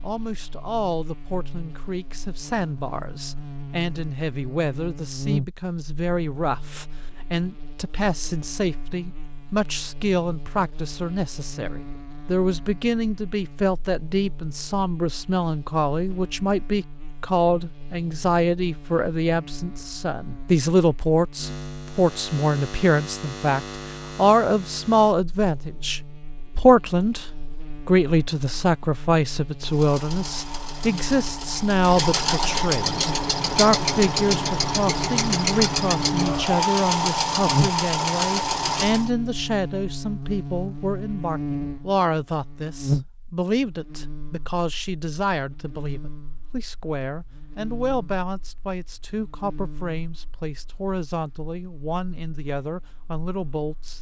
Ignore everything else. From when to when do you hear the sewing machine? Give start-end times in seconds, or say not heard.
29.6-39.1.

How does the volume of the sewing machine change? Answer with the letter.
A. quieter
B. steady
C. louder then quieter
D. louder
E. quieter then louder
D.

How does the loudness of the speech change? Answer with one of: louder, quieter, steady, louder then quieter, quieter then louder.
louder then quieter.